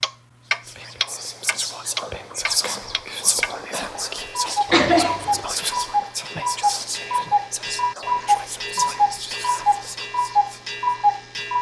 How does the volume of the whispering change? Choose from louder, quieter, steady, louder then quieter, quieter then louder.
quieter.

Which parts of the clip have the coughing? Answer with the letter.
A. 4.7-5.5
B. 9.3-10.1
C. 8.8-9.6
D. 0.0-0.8
A.